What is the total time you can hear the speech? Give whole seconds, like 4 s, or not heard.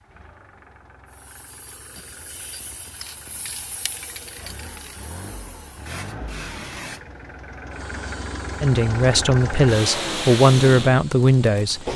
3 s.